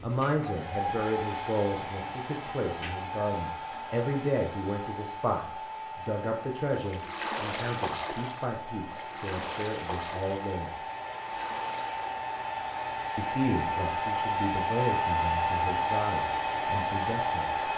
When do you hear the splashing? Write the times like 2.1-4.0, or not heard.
6.8-12.2.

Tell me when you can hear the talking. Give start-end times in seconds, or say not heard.
0.0-10.8, 13.2-17.6.